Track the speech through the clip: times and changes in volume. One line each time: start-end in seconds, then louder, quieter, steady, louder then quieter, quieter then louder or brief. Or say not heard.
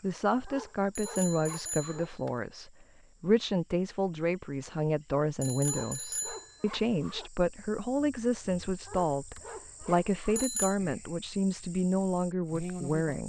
0.0-13.2 steady.